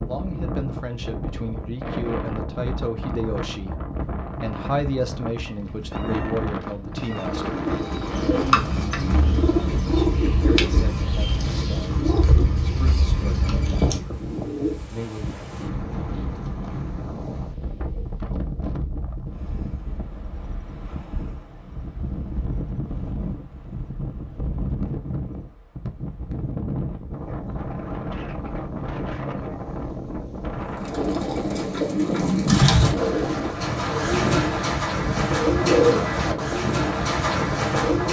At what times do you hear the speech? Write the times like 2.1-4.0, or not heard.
0.0-7.6, 10.3-15.4.